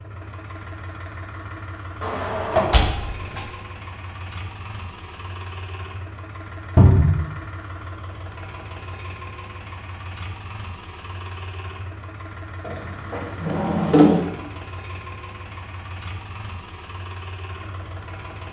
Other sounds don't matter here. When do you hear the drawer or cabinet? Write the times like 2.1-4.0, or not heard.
2.0-3.5, 6.8-7.2, 12.7-14.2.